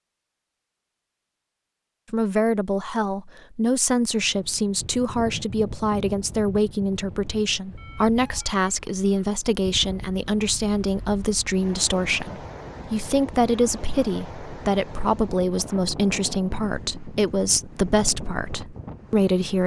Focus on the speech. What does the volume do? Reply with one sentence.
The volume of the speech stays about the same.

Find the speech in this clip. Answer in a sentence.
The speech can be heard from 2.1 to 19.6 s.